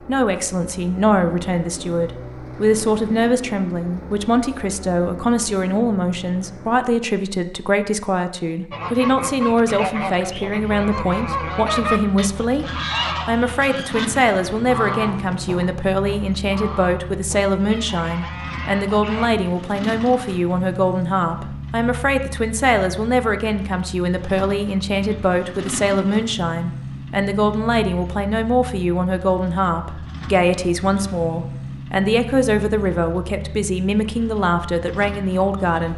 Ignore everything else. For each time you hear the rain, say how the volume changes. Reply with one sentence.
The rain can't be heard in this clip.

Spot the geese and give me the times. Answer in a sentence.
You can hear the geese from 8.7 to 19.3 s.